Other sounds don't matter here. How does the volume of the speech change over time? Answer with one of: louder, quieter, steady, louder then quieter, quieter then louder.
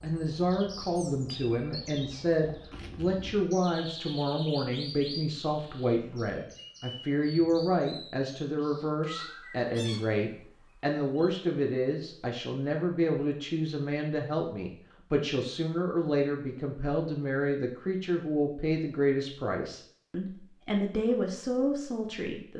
steady.